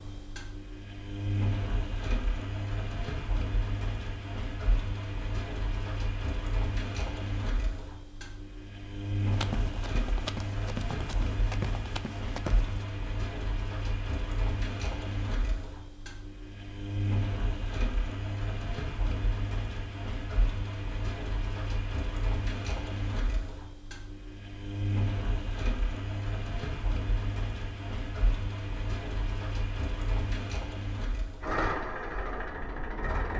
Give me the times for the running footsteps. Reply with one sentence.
The running footsteps can be heard from 9.3 to 12.8 s.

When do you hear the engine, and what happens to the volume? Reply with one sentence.
You can hear the engine from 0.0 to 33.3 s, at a steady volume.